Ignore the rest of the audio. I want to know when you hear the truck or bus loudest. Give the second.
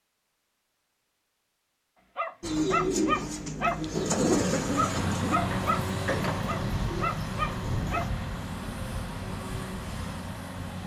6 s.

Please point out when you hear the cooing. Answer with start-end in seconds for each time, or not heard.
2.4-8.1.